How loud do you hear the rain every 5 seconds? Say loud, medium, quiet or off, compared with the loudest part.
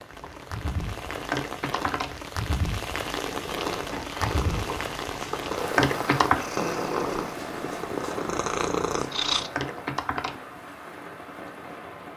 loud, loud, medium.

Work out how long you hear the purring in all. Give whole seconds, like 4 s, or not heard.
6 s.